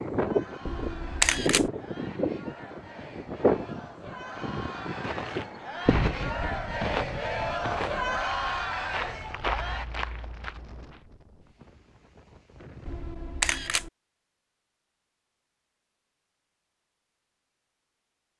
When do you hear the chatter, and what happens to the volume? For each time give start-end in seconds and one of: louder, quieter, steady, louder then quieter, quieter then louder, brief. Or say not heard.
0.1-9.8 louder.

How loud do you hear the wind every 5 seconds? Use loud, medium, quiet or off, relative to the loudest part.
loud, medium, quiet, off.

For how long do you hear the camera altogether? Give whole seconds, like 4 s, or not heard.
2 s.